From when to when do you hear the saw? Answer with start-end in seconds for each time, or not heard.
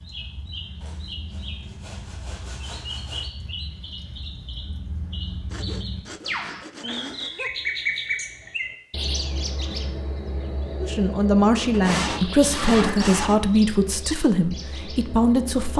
0.8-3.4, 5.5-7.5, 11.7-13.4.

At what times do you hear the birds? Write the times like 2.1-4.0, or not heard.
0.0-15.7.